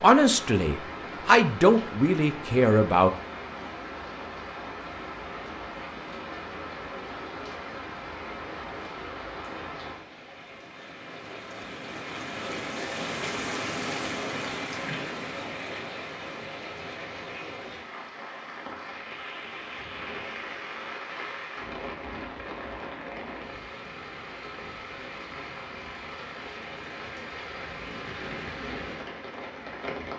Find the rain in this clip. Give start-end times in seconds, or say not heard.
0.0-30.1.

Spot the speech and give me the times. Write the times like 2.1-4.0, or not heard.
0.0-3.1.